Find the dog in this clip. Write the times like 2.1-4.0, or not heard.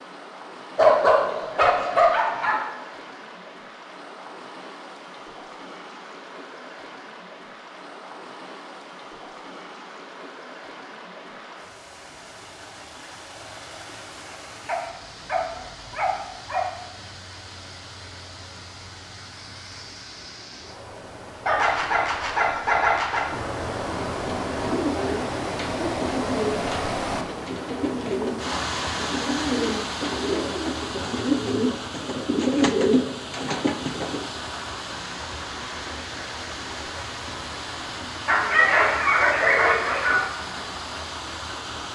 0.8-2.6, 14.7-16.7, 21.4-23.3, 38.2-40.2.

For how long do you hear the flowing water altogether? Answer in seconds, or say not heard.
42 s.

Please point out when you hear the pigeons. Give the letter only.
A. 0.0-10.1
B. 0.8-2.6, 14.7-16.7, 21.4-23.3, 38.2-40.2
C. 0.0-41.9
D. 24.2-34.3
D.